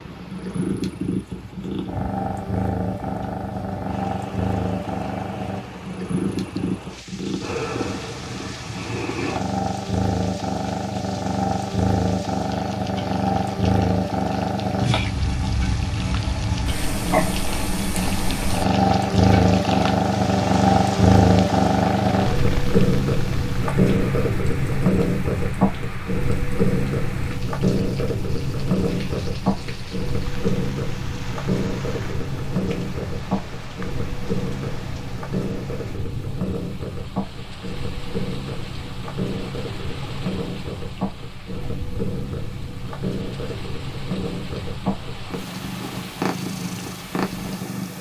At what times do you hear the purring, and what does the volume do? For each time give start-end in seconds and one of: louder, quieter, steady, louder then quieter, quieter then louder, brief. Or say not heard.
0.0-47.9 louder then quieter.